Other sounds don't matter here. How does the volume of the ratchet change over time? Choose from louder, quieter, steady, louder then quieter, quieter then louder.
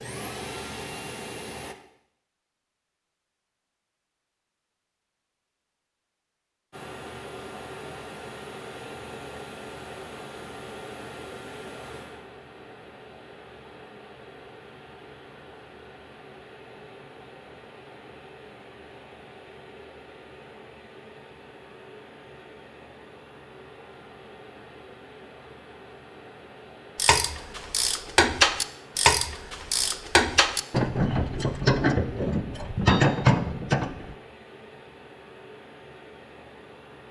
steady.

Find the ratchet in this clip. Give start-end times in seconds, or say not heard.
26.9-34.1.